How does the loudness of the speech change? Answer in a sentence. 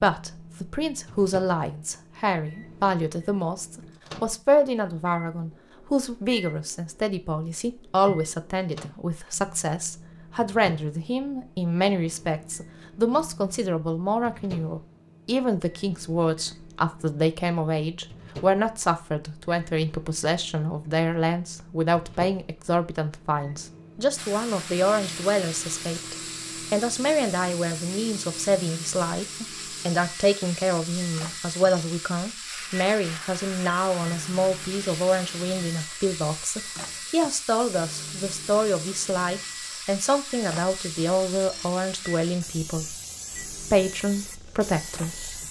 The loudness of the speech stays about the same.